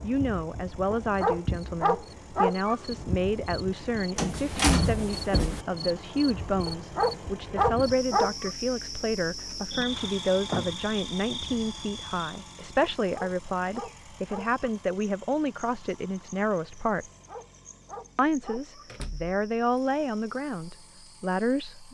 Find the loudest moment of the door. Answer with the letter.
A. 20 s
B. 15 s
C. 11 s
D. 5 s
D.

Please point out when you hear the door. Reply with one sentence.
You can hear the door from 4.2 to 5.7 s, from 9.5 to 10.8 s and from 18.9 to 19.3 s.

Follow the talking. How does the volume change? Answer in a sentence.
The volume of the talking stays about the same.